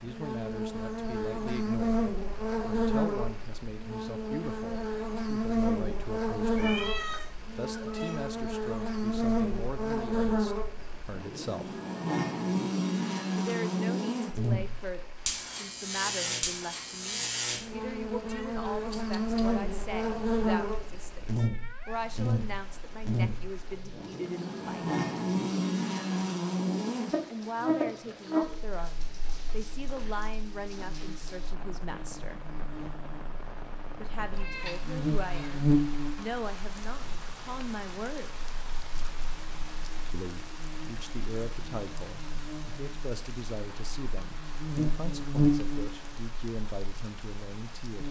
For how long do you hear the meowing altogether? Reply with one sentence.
You can hear the meowing for 4 seconds altogether.